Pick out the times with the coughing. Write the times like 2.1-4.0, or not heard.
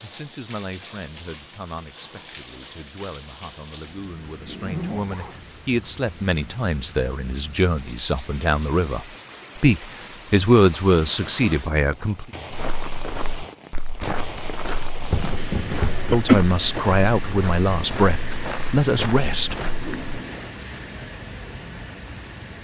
15.1-16.4.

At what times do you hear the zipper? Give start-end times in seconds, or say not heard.
4.5-5.4, 11.1-12.1, 19.6-20.5.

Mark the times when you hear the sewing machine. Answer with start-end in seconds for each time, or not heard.
not heard.